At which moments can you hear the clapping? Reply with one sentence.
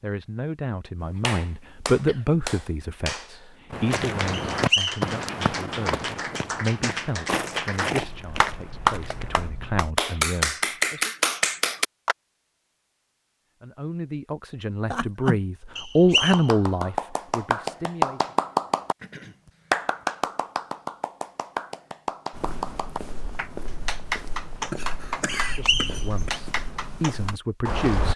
The clapping can be heard from 1.2 to 12.2 s and from 16.1 to 27.4 s.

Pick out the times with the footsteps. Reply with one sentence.
You can hear the footsteps from 3.7 to 9.5 s and from 22.3 to 28.1 s.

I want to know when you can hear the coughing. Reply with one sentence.
You can hear the coughing from 1.1 to 2.5 s, from 14.8 to 15.4 s and from 24.7 to 26.3 s.